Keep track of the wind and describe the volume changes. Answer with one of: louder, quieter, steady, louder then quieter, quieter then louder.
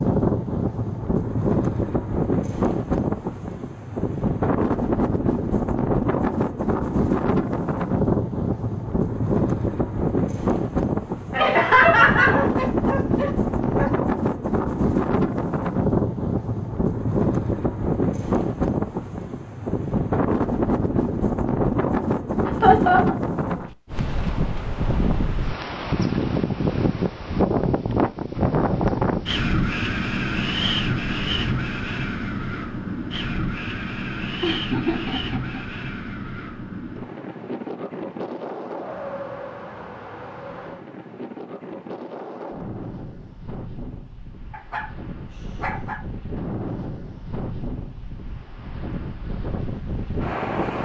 quieter.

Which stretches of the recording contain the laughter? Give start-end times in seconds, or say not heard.
11.3-12.4, 22.4-23.1, 34.4-35.6.